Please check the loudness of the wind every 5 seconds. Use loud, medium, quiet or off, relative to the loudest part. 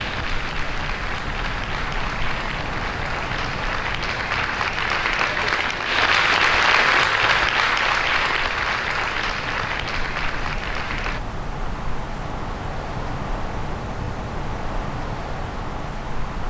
loud, medium, loud, loud.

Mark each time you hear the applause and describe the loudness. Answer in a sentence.
You can hear the applause from 0.0 to 11.2 s, getting louder then quieter.